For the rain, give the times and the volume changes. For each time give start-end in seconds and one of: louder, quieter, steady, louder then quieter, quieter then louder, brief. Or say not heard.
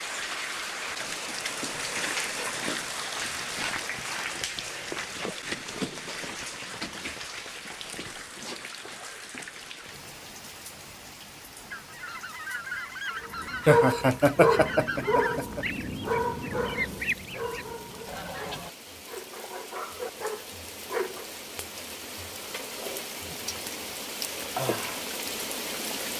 0.0-26.1 quieter then louder.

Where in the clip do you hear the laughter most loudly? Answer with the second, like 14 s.
14 s.